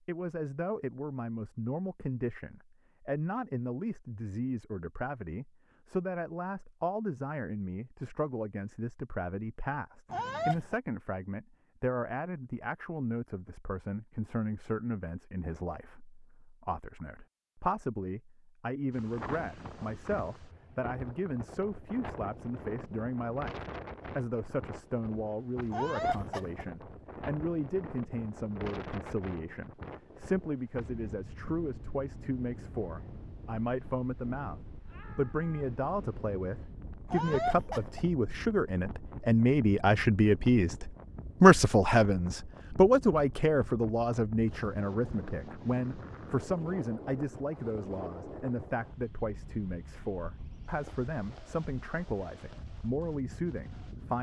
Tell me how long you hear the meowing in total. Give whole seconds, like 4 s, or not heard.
3 s.